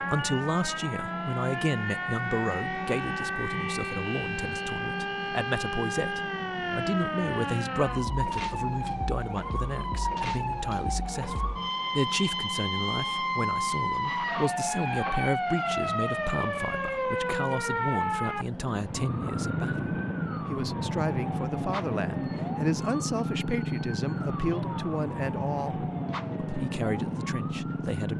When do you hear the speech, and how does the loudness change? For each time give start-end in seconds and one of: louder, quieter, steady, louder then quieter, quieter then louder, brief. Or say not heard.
0.0-28.1 steady.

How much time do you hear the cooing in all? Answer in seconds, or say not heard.
not heard.